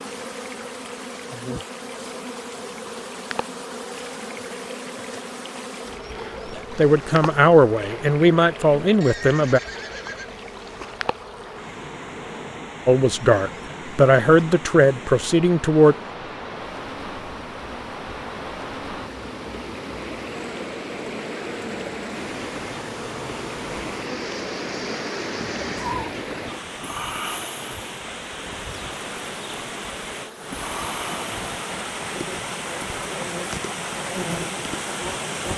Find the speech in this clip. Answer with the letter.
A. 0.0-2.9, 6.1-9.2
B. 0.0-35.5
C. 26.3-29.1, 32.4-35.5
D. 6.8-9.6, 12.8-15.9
D.